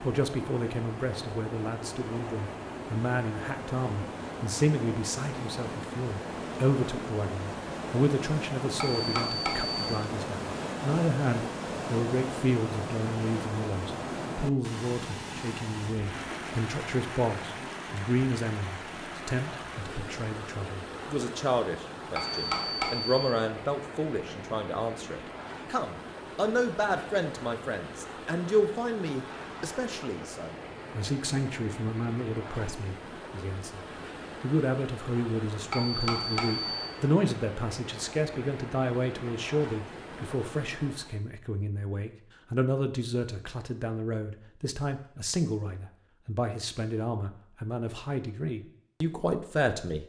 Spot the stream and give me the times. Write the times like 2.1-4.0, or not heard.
0.0-41.2.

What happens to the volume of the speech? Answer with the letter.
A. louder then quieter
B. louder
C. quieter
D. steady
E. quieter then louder
D.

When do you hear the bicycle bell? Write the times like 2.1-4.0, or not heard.
8.8-9.8, 22.1-23.2, 35.7-36.8.